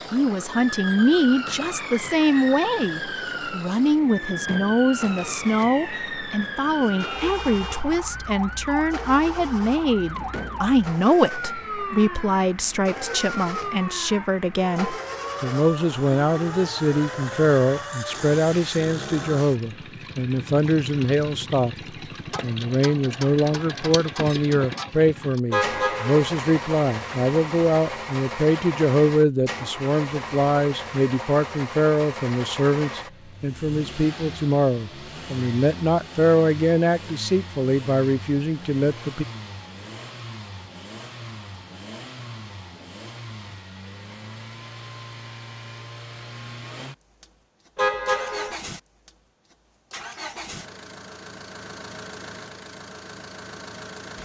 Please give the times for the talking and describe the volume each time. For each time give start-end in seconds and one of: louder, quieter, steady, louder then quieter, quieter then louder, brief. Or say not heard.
0.1-21.8 steady
22.4-39.2 steady.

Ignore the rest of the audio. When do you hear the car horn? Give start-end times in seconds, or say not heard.
7.0-7.8, 25.5-26.3, 47.8-48.5.